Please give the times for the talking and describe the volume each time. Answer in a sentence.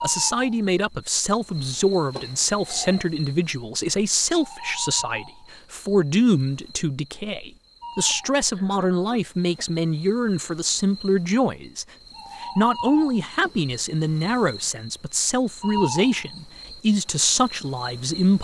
The talking can be heard from 0.0 to 18.3 s, at a steady volume.